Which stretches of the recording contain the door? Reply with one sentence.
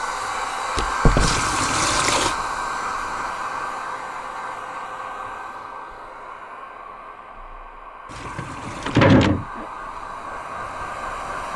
You can hear the door from 0.8 to 1.4 s and from 8.3 to 9.4 s.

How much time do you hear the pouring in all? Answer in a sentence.
You can hear the pouring for 2 seconds altogether.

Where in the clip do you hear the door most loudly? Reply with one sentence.
The loudest moment of the door is at 9 seconds.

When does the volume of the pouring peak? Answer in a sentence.
The volume of the pouring peaks at 2 seconds.